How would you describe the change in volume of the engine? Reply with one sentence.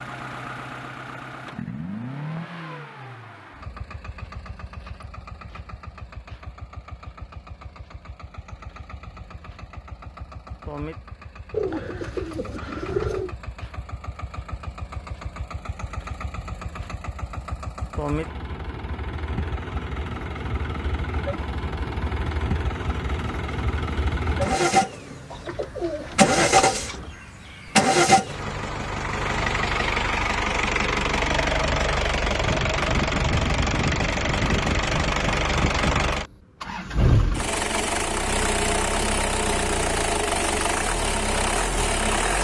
The volume of the engine goes up.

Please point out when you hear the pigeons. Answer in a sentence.
The pigeons can be heard from 11.5 to 13.3 s and from 25.3 to 27.1 s.